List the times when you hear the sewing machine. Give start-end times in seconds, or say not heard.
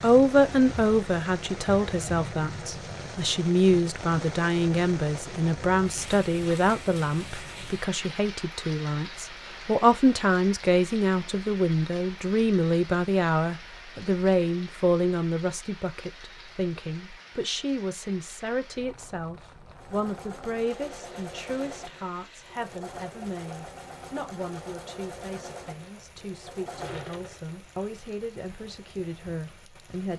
19.7-27.4.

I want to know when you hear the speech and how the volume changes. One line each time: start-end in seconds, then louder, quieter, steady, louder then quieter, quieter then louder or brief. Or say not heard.
0.0-30.1 quieter.